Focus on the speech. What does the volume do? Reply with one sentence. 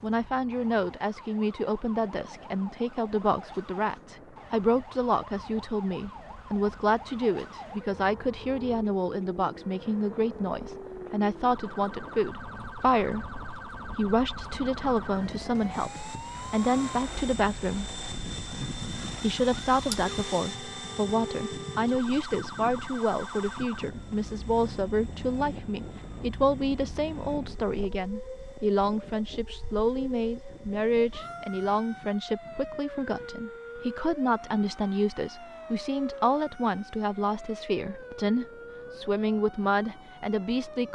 The volume of the speech stays about the same.